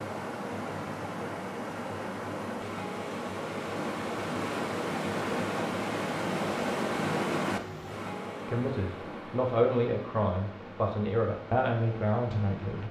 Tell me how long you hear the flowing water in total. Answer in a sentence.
The flowing water can be heard for 13 seconds in total.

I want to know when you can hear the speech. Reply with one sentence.
You can hear the speech from 8.4 to 12.8 s.